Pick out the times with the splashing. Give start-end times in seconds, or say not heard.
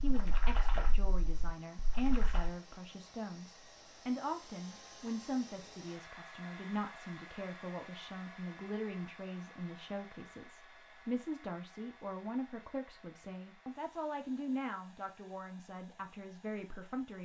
0.0-2.5.